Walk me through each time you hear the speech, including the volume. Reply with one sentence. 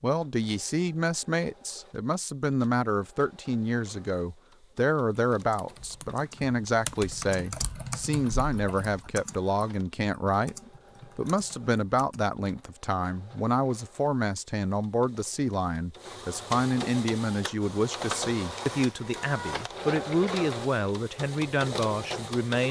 The speech can be heard from 0.0 to 22.6 s, at a steady volume.